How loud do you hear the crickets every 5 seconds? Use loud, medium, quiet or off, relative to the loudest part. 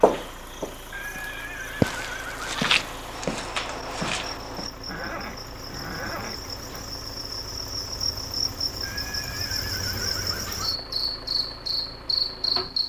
quiet, medium, loud.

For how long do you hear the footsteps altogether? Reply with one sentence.
The footsteps can be heard for 5 seconds in total.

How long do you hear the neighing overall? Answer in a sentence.
The neighing can be heard for 6 seconds in total.